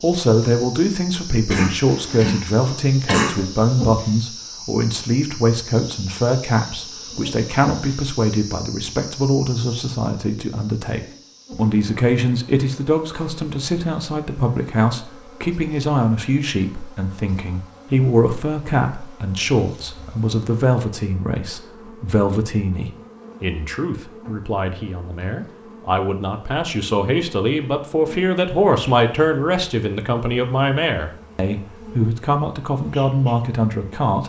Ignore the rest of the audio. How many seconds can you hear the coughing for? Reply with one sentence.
The coughing can be heard for 2 seconds in total.